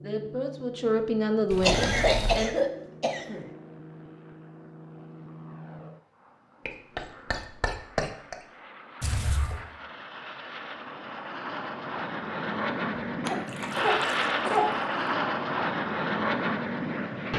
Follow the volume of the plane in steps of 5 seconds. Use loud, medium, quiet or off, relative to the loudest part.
quiet, quiet, loud, loud.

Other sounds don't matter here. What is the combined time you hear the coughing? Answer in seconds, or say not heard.
5 s.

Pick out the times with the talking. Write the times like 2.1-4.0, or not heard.
0.0-2.5.